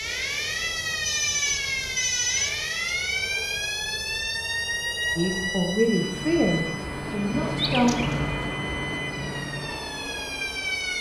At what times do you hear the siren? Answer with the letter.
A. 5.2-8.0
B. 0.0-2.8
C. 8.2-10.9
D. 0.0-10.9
D.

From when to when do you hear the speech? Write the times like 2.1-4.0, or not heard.
5.2-8.0.